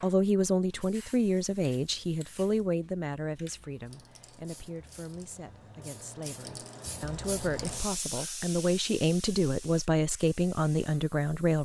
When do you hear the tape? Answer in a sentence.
You can't hear the tape here.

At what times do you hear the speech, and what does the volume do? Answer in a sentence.
You can hear the speech from 0.0 to 11.5 s, getting quieter then louder.